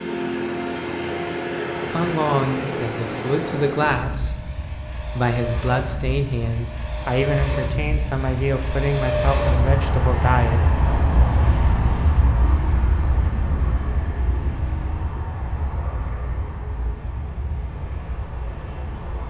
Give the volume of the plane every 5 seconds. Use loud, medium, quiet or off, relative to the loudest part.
loud, loud, loud, medium.